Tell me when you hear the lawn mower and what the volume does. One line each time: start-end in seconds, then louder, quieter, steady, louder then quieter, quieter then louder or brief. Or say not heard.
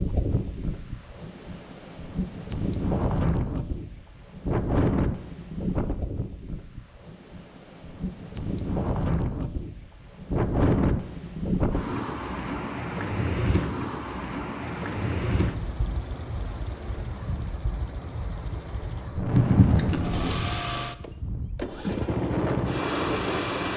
14.6-23.7 louder.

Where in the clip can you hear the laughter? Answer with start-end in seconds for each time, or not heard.
19.3-20.0.